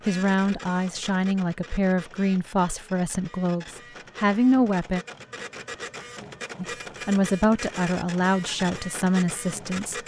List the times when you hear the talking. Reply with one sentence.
The talking can be heard from 0.1 to 5.0 s and from 6.5 to 10.0 s.